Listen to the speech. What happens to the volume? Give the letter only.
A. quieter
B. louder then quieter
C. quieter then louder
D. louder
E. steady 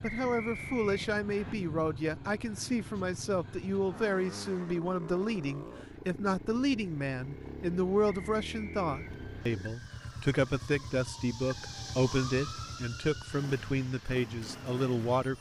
E.